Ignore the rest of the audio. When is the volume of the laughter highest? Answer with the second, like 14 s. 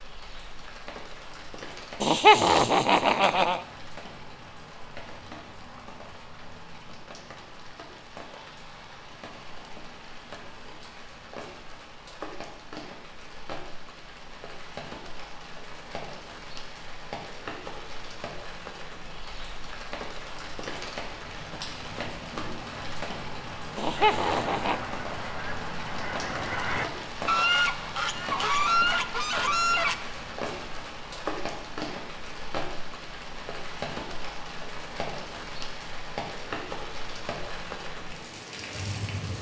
2 s.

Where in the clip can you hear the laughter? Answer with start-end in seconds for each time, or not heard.
2.0-3.6, 23.8-24.9.